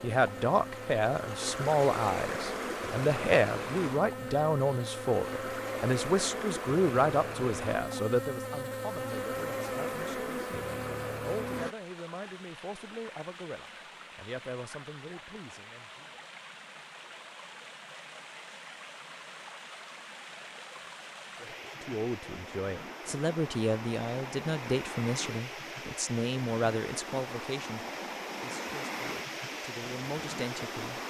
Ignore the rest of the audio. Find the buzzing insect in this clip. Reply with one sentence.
You can hear the buzzing insect from 0.0 to 11.8 s.